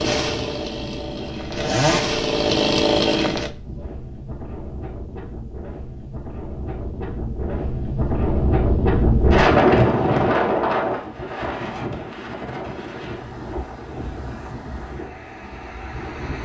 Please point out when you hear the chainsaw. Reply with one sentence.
The chainsaw can be heard from 0.0 to 3.5 s.